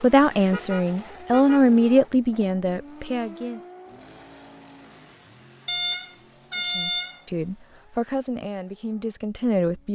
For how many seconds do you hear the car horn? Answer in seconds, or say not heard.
3 s.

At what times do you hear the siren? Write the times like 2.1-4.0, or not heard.
not heard.